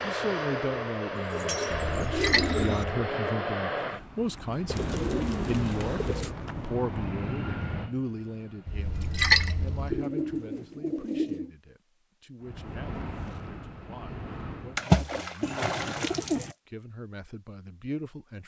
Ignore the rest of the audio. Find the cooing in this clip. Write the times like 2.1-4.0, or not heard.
1.1-2.9, 4.7-6.3, 9.9-11.5, 15.4-16.6.